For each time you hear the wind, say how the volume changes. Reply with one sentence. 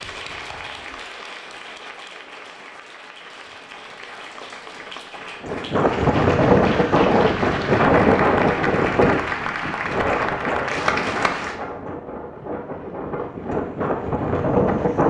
You can hear the wind from 5.4 to 15.0 s, getting quieter then louder.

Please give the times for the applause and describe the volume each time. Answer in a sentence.
The applause can be heard from 0.0 to 11.6 s, getting louder.